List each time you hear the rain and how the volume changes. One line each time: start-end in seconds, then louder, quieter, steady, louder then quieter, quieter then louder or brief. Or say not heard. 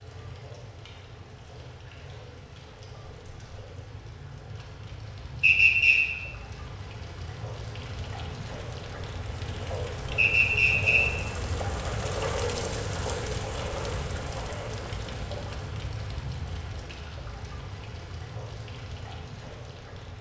0.0-20.1 louder then quieter.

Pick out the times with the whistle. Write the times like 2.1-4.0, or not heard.
5.4-6.0, 10.2-11.0.